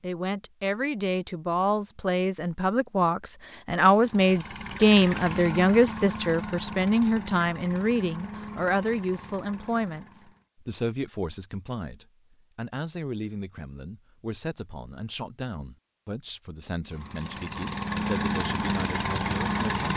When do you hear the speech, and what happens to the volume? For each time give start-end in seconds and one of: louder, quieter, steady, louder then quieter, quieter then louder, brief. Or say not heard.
0.0-19.9 quieter.